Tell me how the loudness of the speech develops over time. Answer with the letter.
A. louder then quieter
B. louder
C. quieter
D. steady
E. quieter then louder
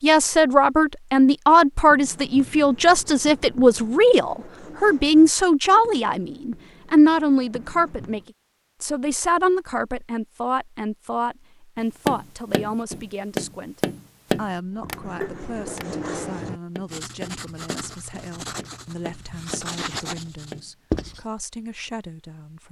C.